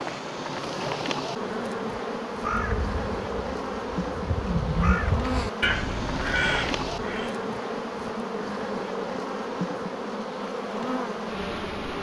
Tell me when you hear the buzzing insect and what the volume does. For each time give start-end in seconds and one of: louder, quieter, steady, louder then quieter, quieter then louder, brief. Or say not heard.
0.0-11.9 steady.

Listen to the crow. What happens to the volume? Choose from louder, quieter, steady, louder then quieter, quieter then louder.
louder.